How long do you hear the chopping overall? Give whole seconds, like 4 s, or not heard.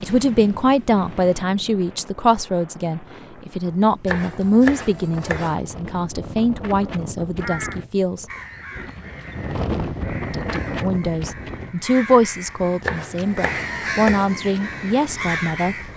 3 s.